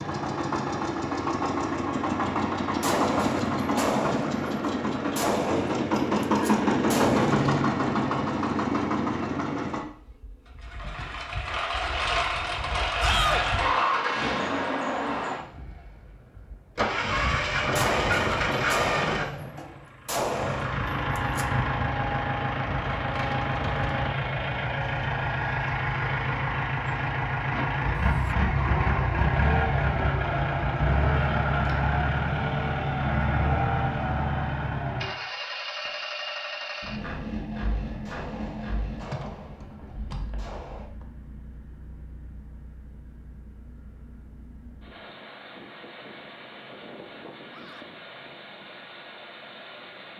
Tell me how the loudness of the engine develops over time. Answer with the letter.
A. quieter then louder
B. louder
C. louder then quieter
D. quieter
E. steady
D.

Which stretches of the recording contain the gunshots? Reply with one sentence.
The gunshots can be heard from 2.8 to 7.7 s, from 17.8 to 21.4 s and from 38.0 to 40.9 s.